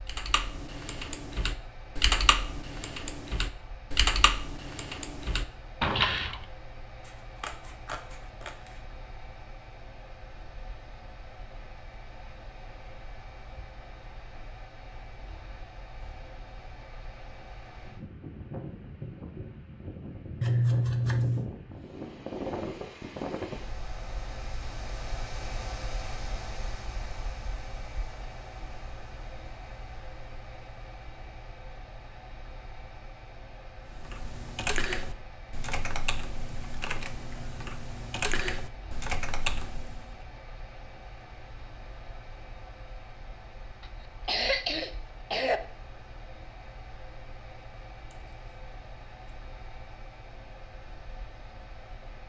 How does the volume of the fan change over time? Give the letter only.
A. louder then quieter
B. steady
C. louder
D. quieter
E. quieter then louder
A.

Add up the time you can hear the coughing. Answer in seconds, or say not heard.
2 s.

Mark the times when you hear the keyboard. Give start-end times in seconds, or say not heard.
0.1-6.5, 33.9-40.2.